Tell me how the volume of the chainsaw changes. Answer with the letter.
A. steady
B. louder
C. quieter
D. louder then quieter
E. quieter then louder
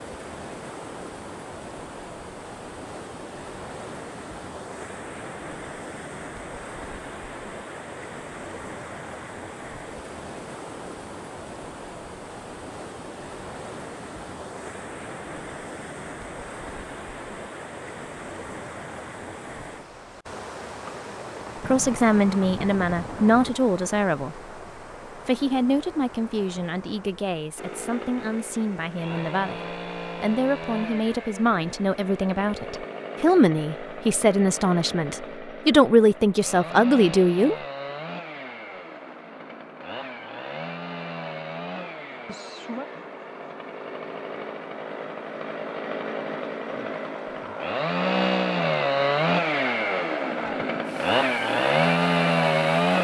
B.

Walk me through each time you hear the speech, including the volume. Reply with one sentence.
The speech can be heard briefly from 21.6 to 24.5 s; and from 25.2 to 37.5 s, getting louder.